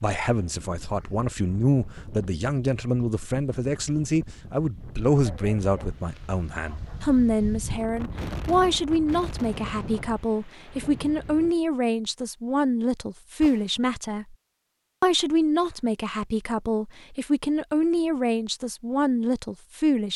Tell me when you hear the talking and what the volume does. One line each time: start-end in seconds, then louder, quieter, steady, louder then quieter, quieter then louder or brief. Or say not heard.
0.0-14.3 steady
15.0-20.1 steady.